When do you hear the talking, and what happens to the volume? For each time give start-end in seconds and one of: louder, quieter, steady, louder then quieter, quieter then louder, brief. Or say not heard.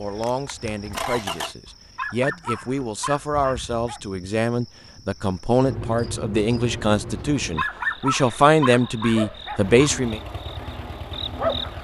0.0-10.2 louder.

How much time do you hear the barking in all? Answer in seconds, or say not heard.
5 s.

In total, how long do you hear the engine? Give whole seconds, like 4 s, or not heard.
4 s.